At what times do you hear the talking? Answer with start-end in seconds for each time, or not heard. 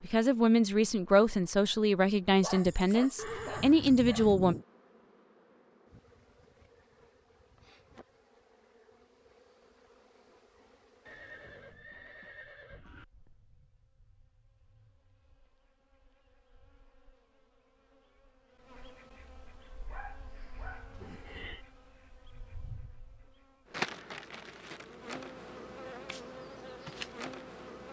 0.0-4.5.